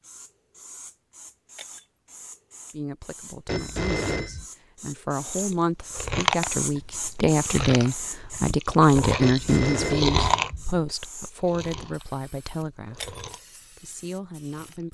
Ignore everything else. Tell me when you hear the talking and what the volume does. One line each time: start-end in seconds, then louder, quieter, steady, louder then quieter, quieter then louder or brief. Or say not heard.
2.7-14.9 louder then quieter.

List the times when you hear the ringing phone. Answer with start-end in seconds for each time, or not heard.
3.5-4.5, 9.2-10.9.